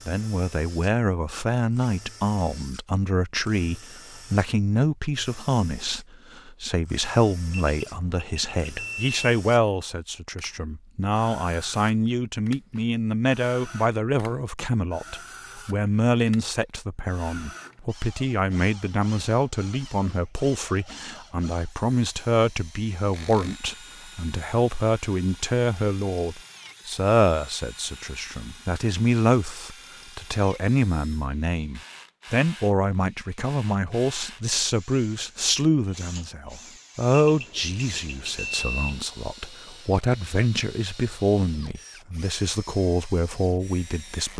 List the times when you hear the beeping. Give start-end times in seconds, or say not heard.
7.7-9.2, 37.2-39.0.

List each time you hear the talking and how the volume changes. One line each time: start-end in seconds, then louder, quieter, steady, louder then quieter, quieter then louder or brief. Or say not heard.
0.1-44.3 steady.